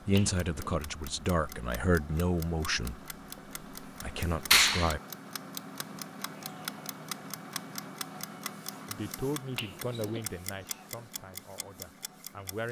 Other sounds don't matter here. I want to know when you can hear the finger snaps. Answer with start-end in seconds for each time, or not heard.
0.1-0.8, 4.5-5.0, 9.6-10.2.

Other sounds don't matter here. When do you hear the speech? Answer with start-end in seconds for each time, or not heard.
0.1-3.1, 3.8-5.0, 8.8-12.6.